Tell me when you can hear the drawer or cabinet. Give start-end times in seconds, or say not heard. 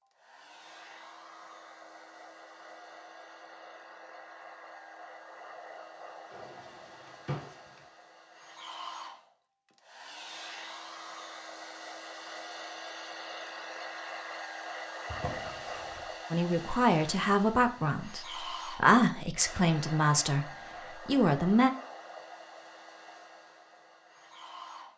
6.3-7.8, 15.1-16.1.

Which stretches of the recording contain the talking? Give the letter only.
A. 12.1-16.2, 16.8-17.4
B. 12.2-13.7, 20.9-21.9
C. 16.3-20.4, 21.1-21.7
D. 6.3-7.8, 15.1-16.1
C.